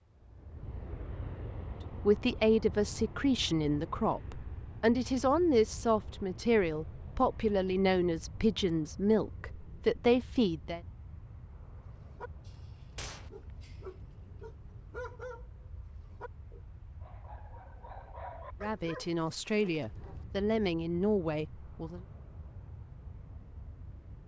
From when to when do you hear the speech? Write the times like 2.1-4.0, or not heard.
2.0-10.8, 18.6-22.0.